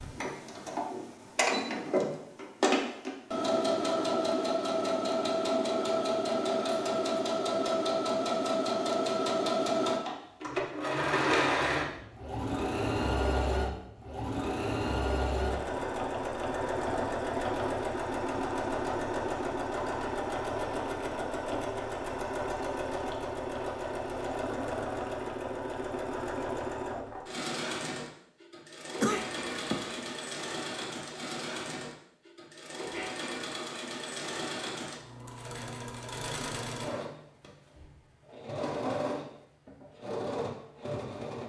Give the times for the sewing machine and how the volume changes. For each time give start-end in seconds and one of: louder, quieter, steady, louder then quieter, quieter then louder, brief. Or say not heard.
0.0-41.4 quieter.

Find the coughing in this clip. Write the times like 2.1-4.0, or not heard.
28.9-30.1.